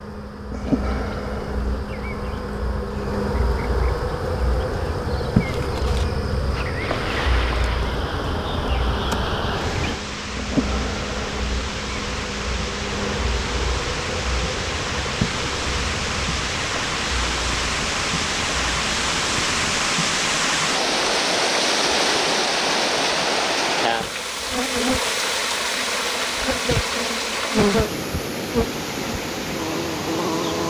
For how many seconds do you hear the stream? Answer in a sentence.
The stream can be heard for 24 seconds in total.